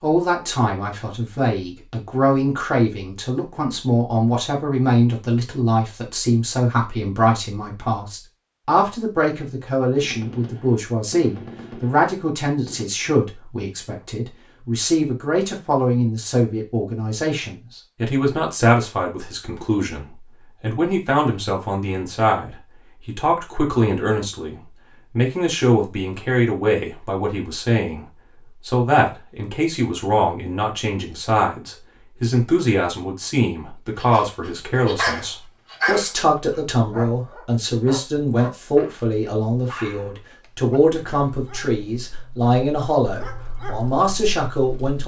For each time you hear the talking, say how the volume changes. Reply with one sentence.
The talking can be heard from 0.0 to 45.0 s, at a steady volume.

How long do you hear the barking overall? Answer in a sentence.
The barking can be heard for 11 seconds in total.